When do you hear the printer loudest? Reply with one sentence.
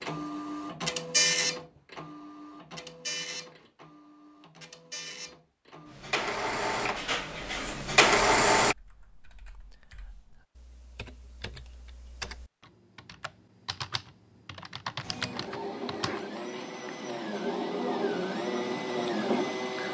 The volume of the printer peaks at 8 seconds.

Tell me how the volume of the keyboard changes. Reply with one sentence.
The volume of the keyboard goes up.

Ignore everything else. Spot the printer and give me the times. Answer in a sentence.
The printer can be heard from 0.0 to 8.8 s and from 15.0 to 19.8 s.